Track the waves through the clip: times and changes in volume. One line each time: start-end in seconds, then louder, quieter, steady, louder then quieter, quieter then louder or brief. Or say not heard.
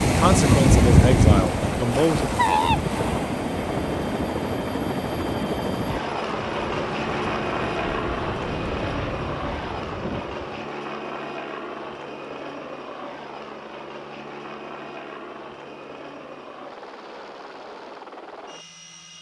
0.0-10.7 quieter.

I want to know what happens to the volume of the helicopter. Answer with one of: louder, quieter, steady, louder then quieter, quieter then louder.
quieter.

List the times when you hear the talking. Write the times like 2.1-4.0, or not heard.
0.0-2.2.